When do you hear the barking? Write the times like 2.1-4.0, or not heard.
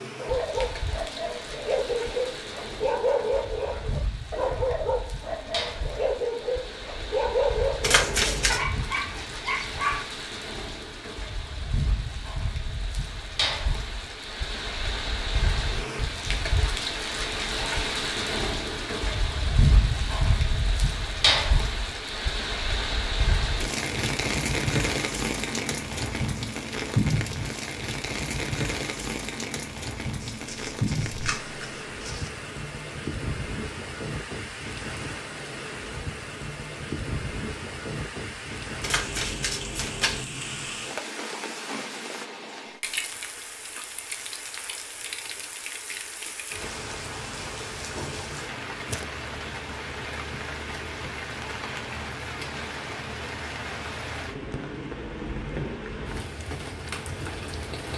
0.1-10.1.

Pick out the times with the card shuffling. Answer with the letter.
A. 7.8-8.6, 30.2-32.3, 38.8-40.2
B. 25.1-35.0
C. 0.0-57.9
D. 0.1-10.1
A.